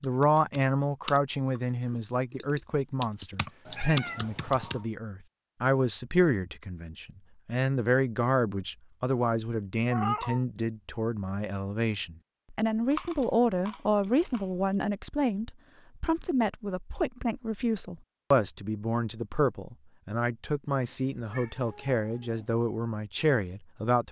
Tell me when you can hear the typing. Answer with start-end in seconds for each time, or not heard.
0.0-4.8.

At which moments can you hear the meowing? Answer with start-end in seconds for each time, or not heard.
3.6-4.8, 9.9-10.4, 20.8-22.6.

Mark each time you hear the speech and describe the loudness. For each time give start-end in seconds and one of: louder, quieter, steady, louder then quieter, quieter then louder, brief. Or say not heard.
0.0-24.0 steady.